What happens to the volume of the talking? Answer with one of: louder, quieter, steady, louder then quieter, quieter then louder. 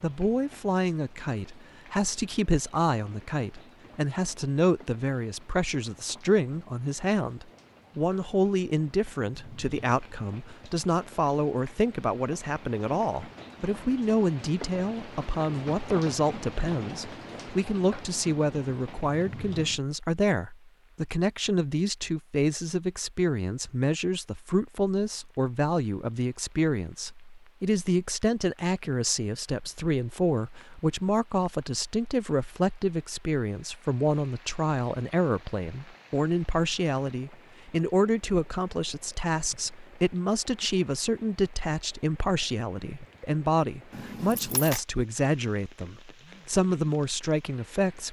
steady.